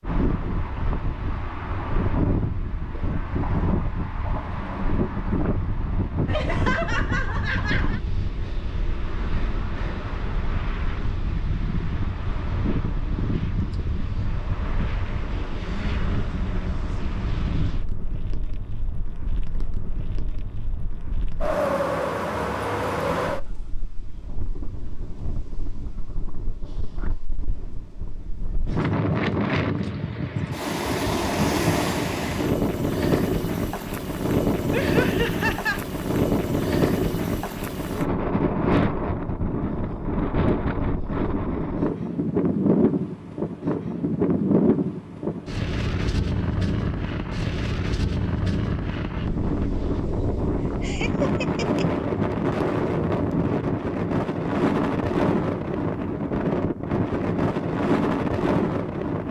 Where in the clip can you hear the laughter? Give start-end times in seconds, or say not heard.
6.2-8.0, 34.7-35.9, 50.6-51.9.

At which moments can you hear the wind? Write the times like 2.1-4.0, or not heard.
0.0-59.2.